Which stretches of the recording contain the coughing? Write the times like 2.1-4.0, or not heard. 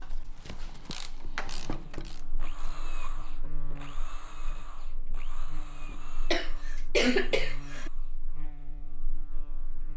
6.3-7.9.